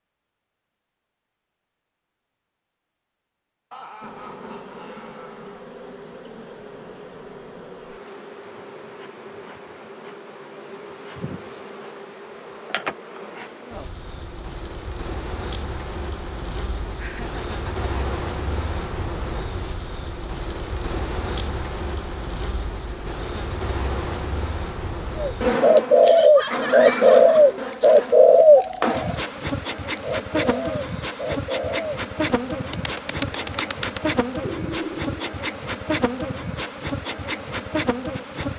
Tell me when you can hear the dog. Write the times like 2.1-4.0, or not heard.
not heard.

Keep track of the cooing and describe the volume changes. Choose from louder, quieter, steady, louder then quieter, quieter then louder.
quieter.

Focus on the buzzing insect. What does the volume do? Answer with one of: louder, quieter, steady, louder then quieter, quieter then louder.
louder.